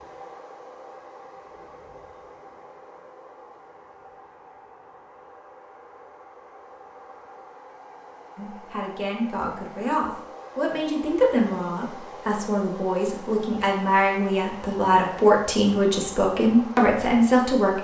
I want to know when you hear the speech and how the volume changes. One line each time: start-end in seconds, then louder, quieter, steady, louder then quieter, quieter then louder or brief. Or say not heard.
8.3-17.8 louder.